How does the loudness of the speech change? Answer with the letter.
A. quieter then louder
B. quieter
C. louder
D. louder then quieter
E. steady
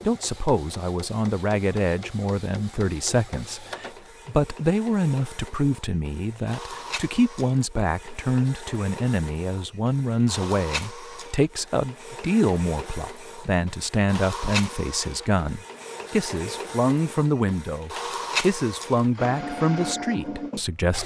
E.